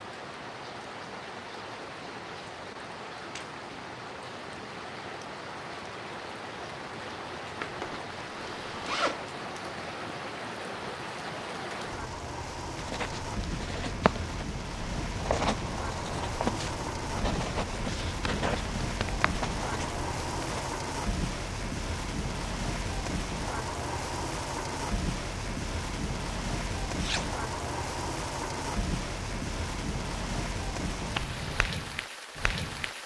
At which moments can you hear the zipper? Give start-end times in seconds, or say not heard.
7.6-9.2, 26.9-27.4.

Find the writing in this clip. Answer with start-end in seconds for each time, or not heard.
12.8-20.6.